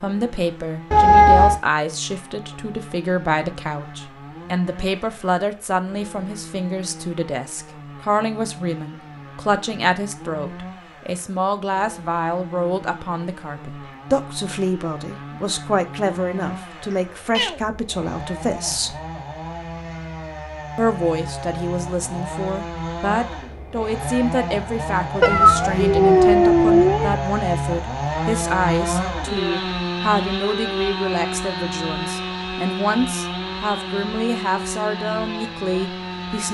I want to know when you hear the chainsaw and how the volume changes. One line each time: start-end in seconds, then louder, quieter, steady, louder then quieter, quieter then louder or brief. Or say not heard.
0.0-36.5 louder.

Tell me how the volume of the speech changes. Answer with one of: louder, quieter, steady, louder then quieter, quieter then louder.
steady.